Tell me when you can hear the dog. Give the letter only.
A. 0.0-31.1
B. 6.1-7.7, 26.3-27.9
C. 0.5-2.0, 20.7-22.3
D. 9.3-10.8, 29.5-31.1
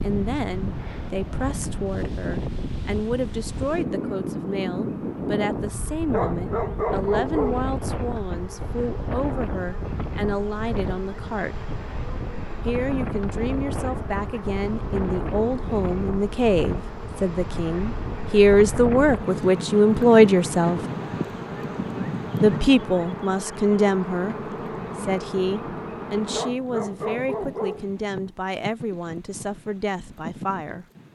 B.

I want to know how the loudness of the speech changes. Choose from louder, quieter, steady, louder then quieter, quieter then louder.
louder then quieter.